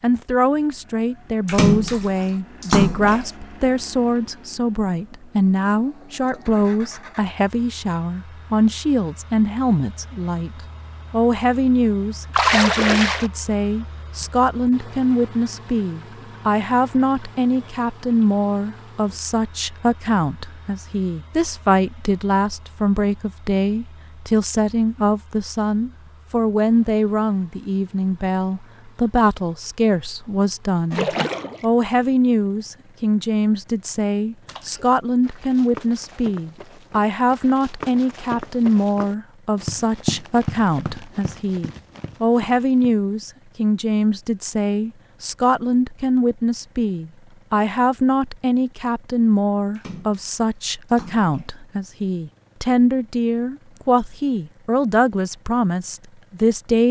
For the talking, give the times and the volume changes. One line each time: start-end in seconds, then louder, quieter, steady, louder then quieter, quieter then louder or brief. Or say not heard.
0.0-56.8 steady.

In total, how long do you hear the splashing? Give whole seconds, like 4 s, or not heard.
6 s.